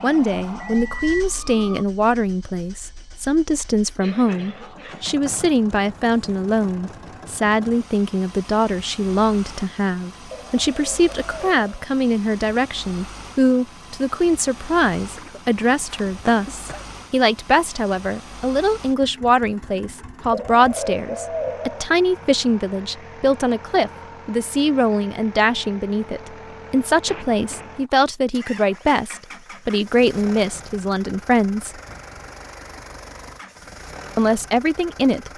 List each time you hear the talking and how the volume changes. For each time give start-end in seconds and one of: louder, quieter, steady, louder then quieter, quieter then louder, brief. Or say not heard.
0.0-31.8 steady
34.1-35.3 brief.